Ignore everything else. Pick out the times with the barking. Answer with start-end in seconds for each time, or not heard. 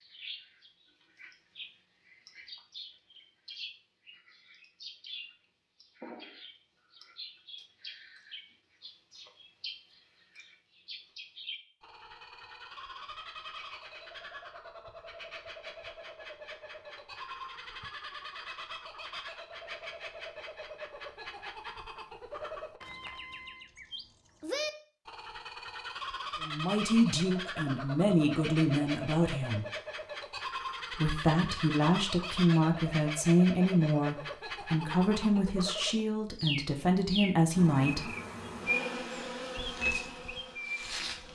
not heard.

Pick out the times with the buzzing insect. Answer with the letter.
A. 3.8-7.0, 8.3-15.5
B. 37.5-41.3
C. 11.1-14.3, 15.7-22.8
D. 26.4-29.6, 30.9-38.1
B.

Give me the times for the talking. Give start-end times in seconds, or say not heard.
26.4-29.6, 30.9-38.1.